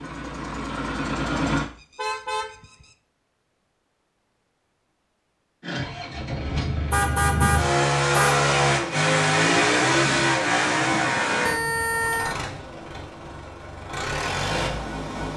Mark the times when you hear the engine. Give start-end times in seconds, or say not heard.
0.0-1.6, 5.6-15.3.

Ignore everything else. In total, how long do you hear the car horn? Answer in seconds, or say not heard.
3 s.